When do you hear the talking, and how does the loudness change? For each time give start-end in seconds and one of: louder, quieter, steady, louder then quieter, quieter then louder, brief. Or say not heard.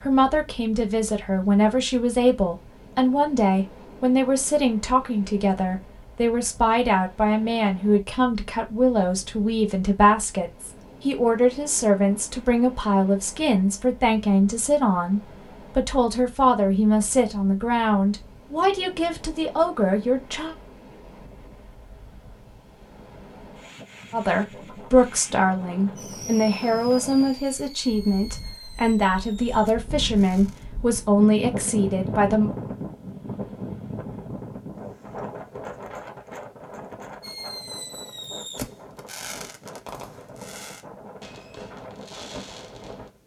0.0-20.6 steady
24.1-32.5 steady.